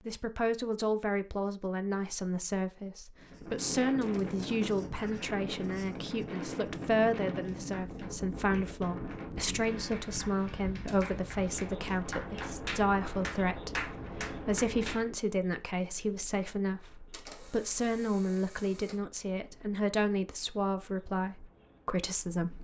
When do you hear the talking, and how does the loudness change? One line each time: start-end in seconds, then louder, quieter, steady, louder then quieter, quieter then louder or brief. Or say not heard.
0.1-22.6 steady.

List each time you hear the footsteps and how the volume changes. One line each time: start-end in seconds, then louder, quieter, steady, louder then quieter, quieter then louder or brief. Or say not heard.
not heard.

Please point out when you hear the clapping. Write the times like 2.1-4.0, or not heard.
7.5-15.1.